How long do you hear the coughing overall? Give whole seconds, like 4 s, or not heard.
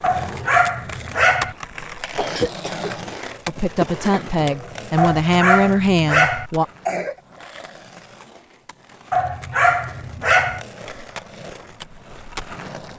3 s.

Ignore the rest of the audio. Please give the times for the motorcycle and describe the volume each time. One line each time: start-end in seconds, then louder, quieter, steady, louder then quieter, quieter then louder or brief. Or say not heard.
not heard.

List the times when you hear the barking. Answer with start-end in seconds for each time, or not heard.
0.0-1.6, 5.0-6.5, 9.1-10.6.